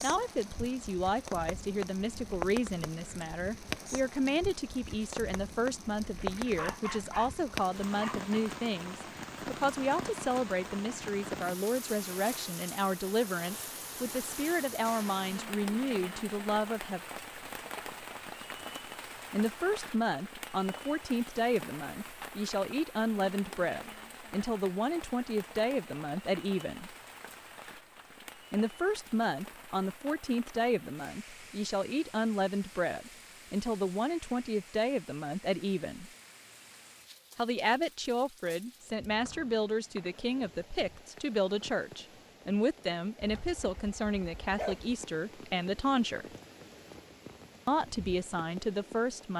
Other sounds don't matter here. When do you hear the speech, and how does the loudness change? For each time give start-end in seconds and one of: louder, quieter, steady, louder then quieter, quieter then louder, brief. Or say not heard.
0.0-17.0 steady
19.3-26.9 steady
28.5-36.1 steady
37.4-46.2 steady
47.6-49.3 brief.